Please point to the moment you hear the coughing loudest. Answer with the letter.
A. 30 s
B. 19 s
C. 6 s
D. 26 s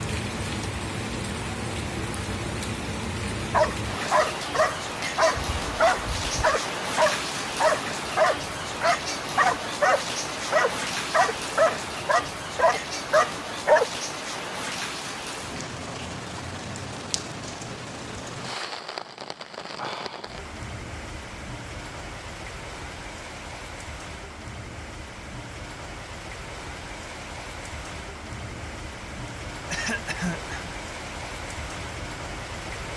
A.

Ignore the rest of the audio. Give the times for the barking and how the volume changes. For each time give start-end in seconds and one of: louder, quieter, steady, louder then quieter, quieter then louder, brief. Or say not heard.
3.5-13.9 steady.